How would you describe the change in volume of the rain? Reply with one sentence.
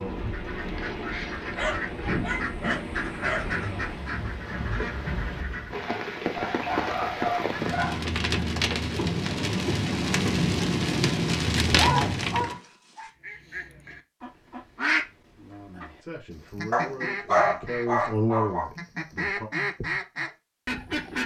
The loudness of the rain goes up.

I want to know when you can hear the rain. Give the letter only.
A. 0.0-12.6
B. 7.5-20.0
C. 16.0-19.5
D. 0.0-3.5
A.